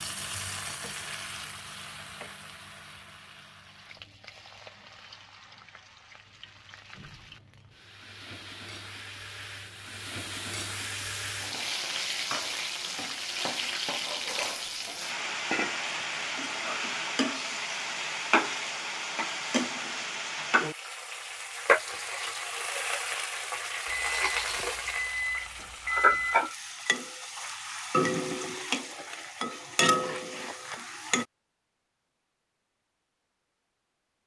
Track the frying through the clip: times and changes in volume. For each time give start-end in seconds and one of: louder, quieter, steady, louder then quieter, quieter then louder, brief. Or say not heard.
0.0-31.2 louder.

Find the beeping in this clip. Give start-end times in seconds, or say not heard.
23.9-26.4.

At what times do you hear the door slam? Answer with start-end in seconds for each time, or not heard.
not heard.